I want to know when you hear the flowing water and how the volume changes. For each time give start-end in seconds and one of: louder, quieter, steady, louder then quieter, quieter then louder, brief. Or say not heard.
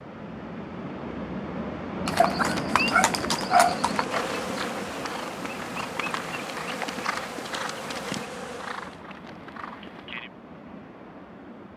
0.0-11.7 quieter.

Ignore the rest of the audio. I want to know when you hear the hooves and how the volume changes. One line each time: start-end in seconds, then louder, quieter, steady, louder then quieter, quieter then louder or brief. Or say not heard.
2.0-10.3 quieter.